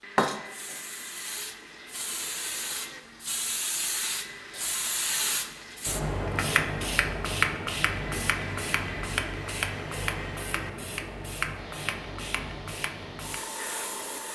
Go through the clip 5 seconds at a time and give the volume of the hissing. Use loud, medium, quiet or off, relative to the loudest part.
loud, loud, medium.